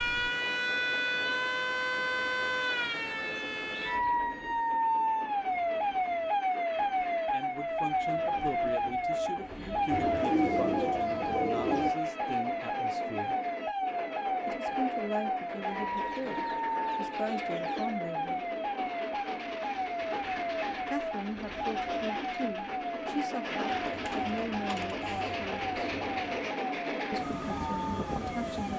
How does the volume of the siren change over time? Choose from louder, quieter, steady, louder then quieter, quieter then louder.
quieter.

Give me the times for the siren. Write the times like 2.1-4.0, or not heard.
0.0-28.7.